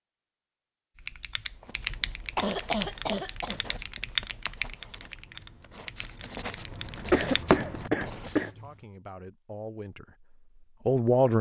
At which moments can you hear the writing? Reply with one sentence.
The writing can be heard from 1.4 to 8.5 s.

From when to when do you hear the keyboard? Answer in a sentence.
You can hear the keyboard from 0.9 to 7.5 s.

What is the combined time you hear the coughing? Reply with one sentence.
You can hear the coughing for 3 seconds altogether.